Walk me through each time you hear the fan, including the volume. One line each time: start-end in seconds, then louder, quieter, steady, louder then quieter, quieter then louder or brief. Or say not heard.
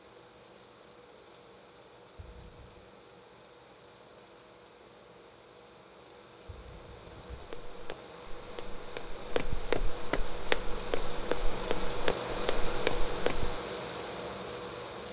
0.0-15.0 louder.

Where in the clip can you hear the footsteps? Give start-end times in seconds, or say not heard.
7.3-13.6.